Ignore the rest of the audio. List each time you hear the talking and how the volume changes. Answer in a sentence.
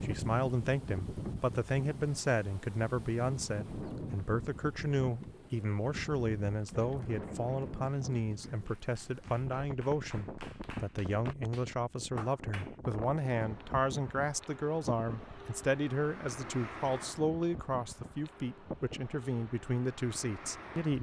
The talking can be heard from 0.0 to 20.9 s, at a steady volume.